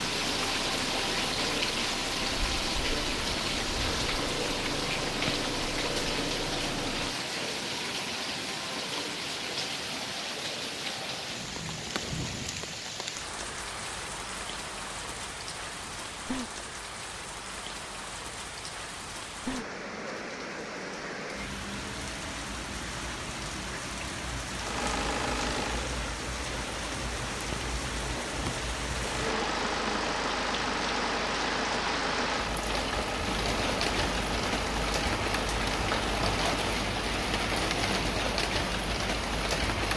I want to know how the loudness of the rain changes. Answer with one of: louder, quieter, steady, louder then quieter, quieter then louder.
quieter then louder.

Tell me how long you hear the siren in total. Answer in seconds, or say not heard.
not heard.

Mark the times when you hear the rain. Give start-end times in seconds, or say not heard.
0.0-39.9.